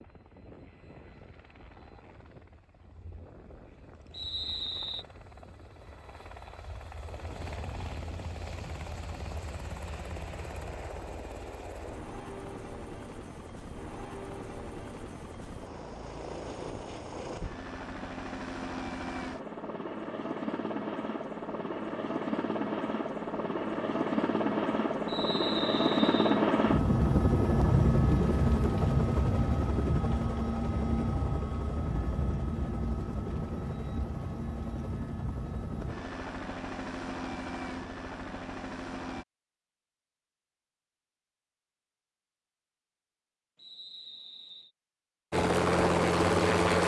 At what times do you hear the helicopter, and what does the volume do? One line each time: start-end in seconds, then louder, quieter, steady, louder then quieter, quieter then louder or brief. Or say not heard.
0.0-39.2 louder then quieter
45.3-46.8 brief.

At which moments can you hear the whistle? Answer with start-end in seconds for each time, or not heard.
4.1-5.0, 25.1-26.4, 43.5-44.7.